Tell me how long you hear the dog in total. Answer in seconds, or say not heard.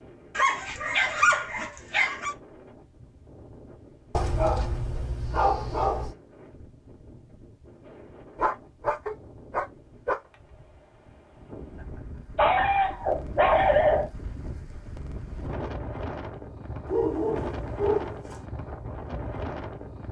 9 s.